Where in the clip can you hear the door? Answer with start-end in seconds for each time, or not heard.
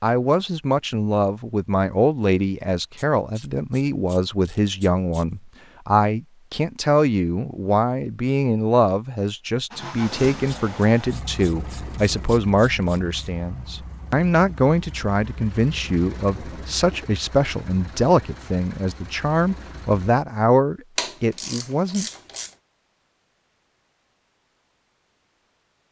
not heard.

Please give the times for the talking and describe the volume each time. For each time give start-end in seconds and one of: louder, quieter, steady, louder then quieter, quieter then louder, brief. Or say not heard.
0.0-22.1 steady.